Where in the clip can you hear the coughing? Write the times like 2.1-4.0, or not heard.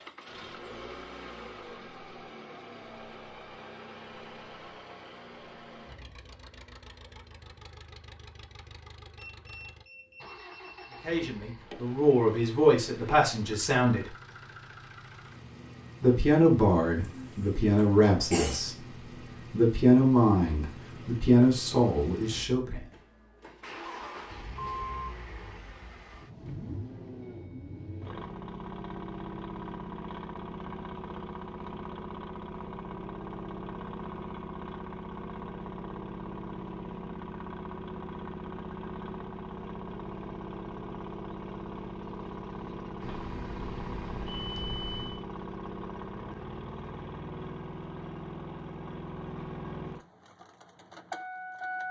16.9-18.6.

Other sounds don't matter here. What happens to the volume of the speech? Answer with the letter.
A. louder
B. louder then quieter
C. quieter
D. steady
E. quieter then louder
D.